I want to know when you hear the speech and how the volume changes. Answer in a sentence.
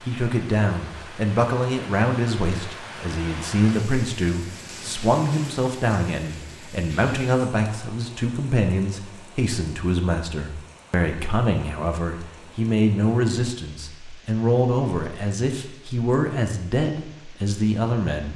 The speech can be heard from 0.0 to 18.3 s, at a steady volume.